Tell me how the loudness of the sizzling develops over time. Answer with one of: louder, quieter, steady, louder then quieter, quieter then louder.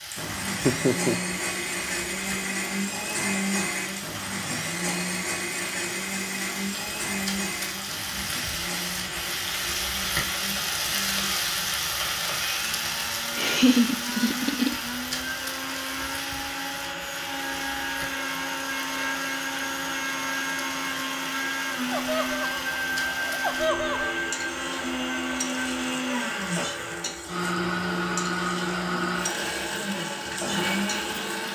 louder then quieter.